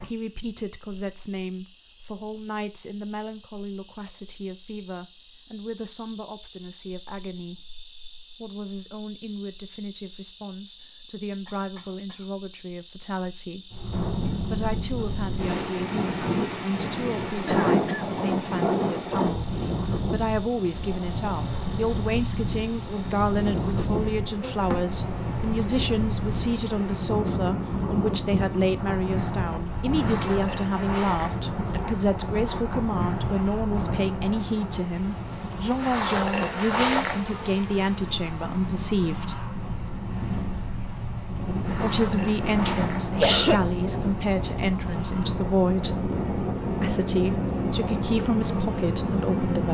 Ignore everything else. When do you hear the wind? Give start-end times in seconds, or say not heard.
13.7-49.6.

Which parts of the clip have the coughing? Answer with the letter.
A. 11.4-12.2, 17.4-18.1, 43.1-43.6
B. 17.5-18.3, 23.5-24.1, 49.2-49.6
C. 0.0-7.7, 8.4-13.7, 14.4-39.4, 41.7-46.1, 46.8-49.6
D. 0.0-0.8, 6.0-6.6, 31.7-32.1
A.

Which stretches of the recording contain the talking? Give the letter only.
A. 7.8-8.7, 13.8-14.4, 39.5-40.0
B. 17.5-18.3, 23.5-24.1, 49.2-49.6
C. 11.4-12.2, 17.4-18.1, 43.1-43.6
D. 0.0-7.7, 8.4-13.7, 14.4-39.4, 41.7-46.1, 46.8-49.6
D.